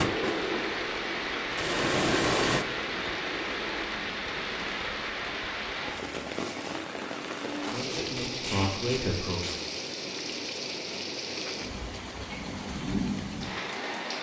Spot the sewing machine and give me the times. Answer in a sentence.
You can hear the sewing machine from 0.0 to 3.9 s.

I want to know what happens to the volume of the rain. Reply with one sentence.
The volume of the rain stays about the same.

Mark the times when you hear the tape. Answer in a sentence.
You can hear the tape from 7.8 to 9.6 s.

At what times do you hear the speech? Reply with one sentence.
You can hear the speech from 7.7 to 9.6 s.